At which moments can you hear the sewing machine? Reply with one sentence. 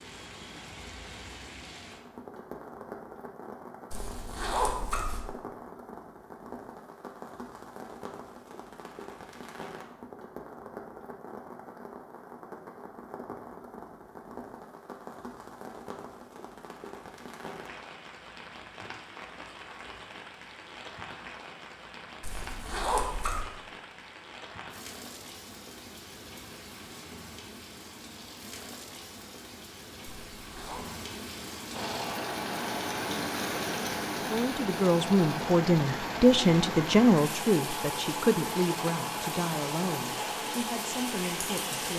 You can hear the sewing machine from 31.7 to 41.9 s.